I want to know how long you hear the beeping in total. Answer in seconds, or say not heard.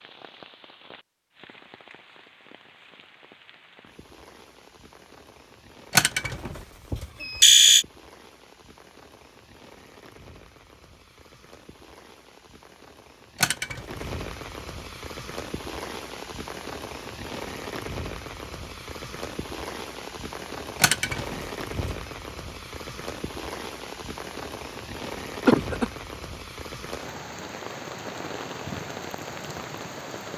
4 s.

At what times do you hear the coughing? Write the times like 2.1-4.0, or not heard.
25.4-25.9.